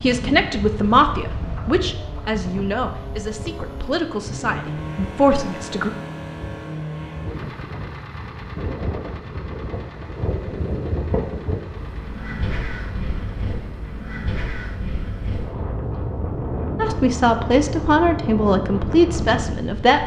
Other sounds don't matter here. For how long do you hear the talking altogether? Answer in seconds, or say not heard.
9 s.